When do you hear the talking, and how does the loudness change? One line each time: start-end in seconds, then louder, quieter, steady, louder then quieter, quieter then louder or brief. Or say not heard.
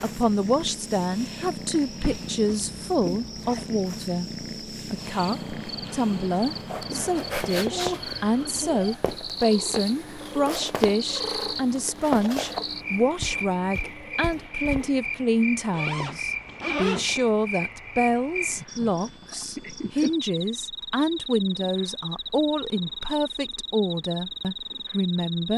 0.0-25.5 steady.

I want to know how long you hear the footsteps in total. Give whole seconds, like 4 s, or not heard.
8 s.